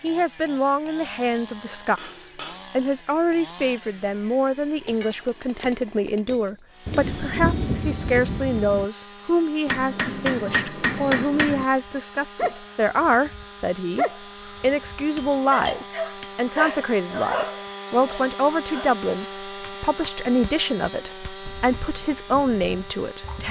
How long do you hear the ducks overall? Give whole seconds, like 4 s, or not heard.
not heard.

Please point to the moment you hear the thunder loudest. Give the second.
8 s.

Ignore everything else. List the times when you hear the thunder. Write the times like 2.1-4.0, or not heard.
6.8-8.8.